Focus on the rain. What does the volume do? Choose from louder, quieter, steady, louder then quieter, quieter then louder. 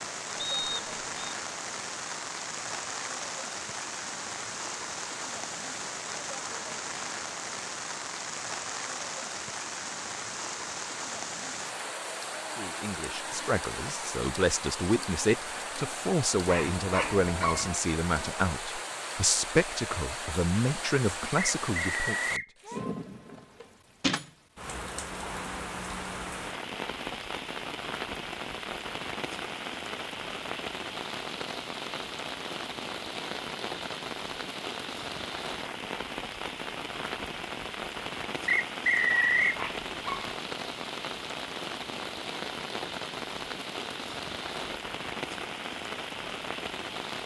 steady.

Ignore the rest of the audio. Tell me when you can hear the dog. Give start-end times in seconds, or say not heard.
16.4-17.8, 39.1-40.2.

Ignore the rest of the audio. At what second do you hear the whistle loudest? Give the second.
39 s.